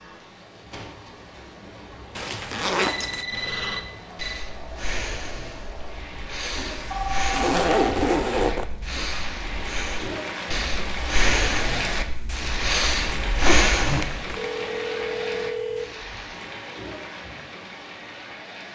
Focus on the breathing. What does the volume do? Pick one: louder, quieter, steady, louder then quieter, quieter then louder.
louder.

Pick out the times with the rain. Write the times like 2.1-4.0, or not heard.
0.0-18.7.